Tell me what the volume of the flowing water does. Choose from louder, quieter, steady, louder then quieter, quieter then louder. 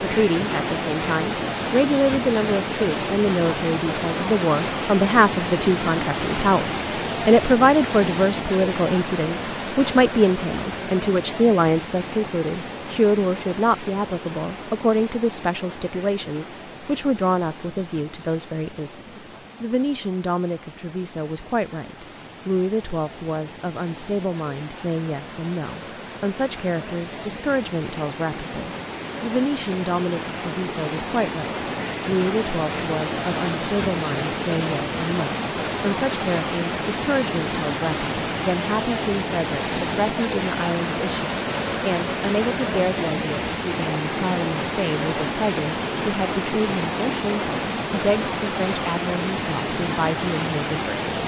quieter then louder.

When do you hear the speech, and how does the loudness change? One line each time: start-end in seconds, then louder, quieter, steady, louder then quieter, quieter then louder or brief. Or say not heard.
0.0-51.1 quieter.